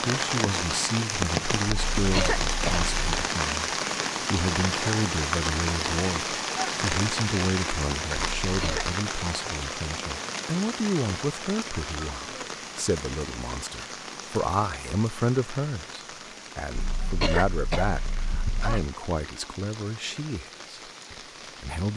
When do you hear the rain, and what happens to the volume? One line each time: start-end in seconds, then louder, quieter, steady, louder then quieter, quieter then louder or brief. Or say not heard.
0.0-21.9 quieter.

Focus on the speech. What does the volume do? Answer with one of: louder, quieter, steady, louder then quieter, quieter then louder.
steady.